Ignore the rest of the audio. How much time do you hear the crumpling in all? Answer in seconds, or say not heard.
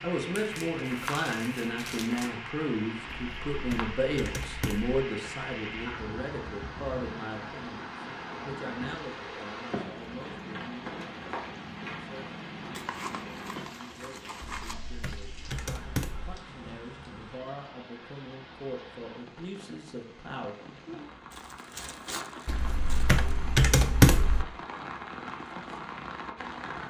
6 s.